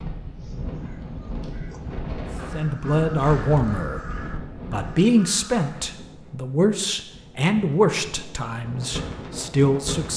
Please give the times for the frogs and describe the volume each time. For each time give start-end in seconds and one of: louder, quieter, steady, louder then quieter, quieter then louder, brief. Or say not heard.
not heard.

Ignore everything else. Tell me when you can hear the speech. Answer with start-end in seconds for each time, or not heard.
2.5-4.0, 4.7-10.1.